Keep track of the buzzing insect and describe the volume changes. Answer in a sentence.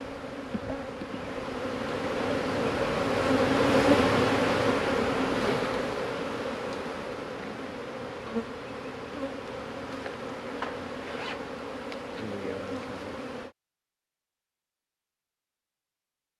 The loudness of the buzzing insect goes up, then down.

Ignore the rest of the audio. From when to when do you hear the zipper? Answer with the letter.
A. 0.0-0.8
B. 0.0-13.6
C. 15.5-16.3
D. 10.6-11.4
D.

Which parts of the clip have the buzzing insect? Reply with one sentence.
You can hear the buzzing insect from 0.0 to 13.6 s.